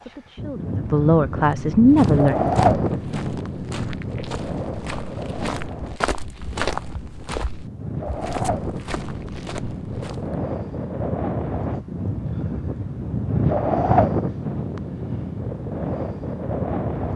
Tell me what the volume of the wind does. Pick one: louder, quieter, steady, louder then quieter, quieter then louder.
quieter then louder.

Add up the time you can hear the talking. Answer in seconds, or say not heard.
2 s.